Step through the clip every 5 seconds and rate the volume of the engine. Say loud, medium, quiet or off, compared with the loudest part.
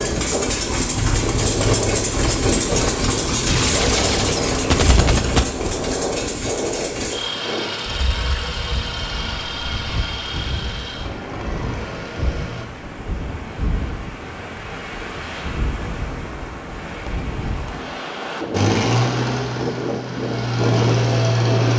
loud, medium, quiet, loud, loud.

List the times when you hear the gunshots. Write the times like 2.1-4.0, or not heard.
3.5-5.5.